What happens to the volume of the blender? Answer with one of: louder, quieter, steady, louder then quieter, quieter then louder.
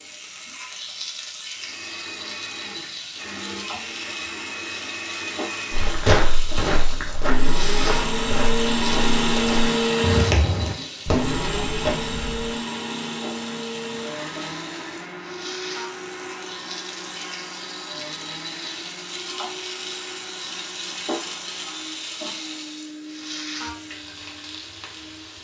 louder then quieter.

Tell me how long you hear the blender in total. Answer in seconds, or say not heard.
24 s.